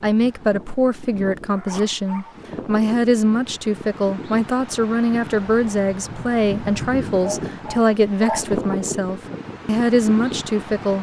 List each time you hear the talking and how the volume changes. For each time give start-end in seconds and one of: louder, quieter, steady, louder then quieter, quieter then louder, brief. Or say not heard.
0.0-10.9 steady.